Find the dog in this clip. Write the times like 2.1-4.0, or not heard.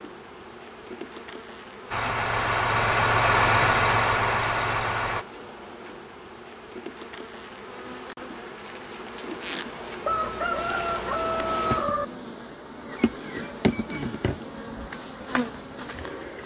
not heard.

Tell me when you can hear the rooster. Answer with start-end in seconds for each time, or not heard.
10.1-12.1.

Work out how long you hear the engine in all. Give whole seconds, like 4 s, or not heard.
3 s.